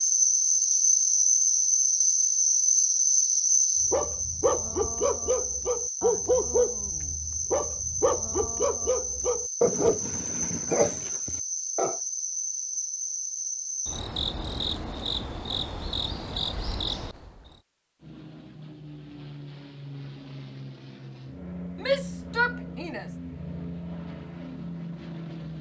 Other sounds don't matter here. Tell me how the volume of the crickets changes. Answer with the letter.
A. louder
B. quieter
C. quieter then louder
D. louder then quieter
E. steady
B.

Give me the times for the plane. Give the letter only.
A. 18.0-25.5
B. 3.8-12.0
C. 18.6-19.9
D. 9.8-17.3
A.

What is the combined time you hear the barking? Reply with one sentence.
You can hear the barking for 8 seconds altogether.